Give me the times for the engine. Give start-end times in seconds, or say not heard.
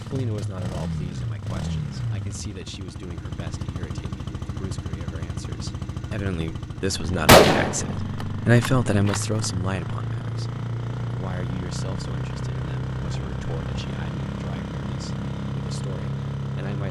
0.0-16.8.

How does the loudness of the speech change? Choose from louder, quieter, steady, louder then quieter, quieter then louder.
louder then quieter.